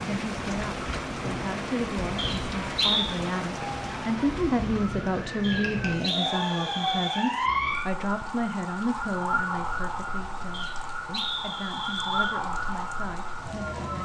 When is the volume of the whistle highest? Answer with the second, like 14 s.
3 s.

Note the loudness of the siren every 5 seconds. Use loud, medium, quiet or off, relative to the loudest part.
medium, loud, loud.